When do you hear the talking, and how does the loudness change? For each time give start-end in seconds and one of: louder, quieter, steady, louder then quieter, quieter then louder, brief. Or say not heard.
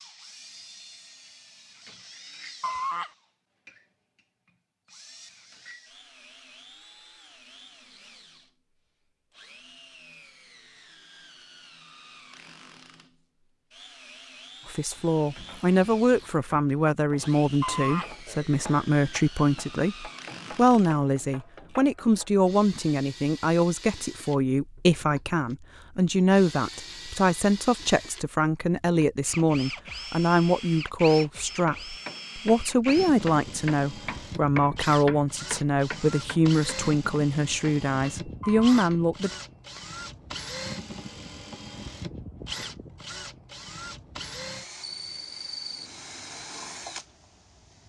14.7-39.3 steady.